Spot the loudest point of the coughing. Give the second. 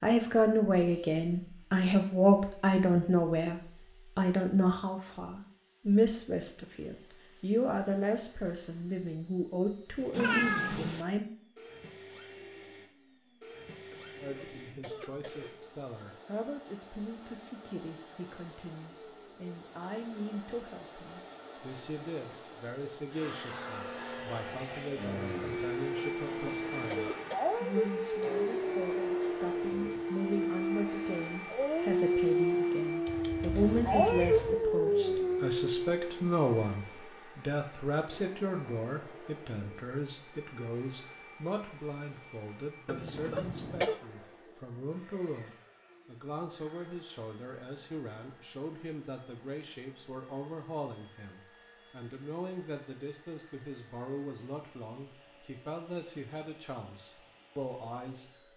44 s.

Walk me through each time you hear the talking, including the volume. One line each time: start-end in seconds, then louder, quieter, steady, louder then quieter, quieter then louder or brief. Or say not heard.
0.0-11.3 quieter
14.2-58.4 louder then quieter.